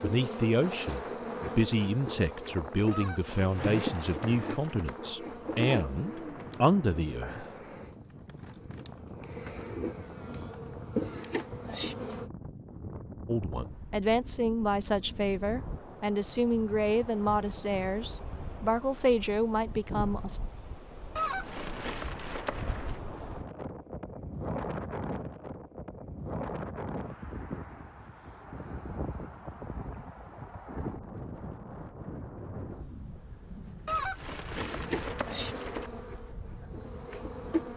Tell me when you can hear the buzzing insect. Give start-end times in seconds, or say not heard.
0.0-12.3, 34.5-37.7.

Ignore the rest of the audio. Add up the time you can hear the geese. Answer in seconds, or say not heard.
6 s.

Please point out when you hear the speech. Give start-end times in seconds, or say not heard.
0.0-7.5, 13.2-20.4.